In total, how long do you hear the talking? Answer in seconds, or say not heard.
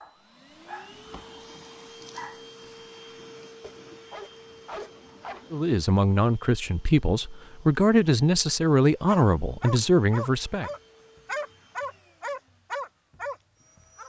5 s.